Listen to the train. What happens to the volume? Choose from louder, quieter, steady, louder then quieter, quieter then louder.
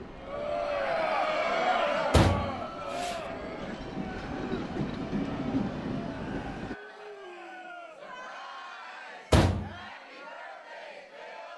louder.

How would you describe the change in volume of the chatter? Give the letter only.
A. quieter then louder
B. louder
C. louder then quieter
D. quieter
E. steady
D.